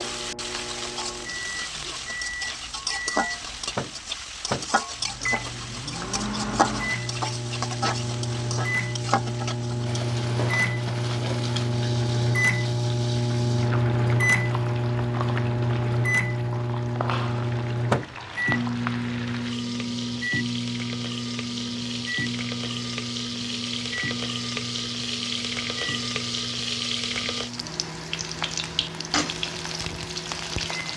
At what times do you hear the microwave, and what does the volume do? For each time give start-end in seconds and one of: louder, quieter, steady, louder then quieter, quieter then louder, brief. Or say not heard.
0.0-30.9 louder then quieter.